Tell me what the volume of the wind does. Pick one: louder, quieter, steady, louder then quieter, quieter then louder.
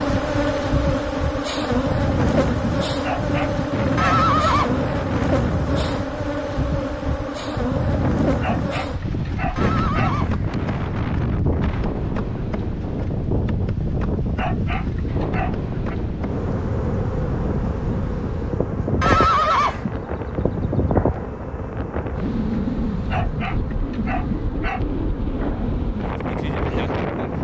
steady.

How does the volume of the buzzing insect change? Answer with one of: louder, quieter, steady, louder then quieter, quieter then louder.
quieter.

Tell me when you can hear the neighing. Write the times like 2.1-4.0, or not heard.
4.0-4.7, 9.6-10.8, 19.0-19.9.